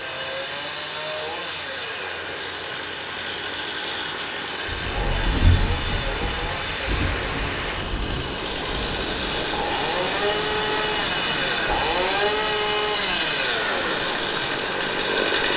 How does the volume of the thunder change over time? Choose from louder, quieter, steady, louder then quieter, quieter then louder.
quieter.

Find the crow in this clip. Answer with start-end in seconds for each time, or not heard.
not heard.